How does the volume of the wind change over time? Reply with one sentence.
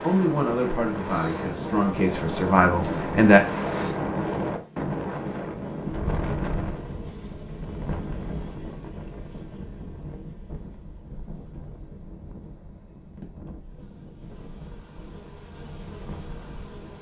The loudness of the wind goes down.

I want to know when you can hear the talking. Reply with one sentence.
The talking can be heard from 0.0 to 3.4 s.